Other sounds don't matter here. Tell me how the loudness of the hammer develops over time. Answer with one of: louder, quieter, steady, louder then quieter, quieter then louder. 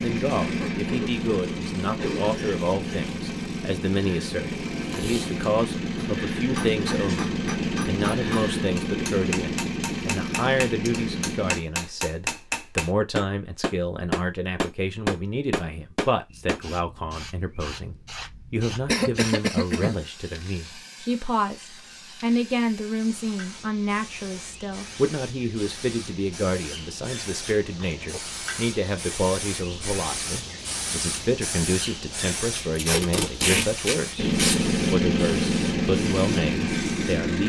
louder.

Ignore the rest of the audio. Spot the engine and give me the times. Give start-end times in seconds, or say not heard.
0.0-11.6, 34.1-37.4.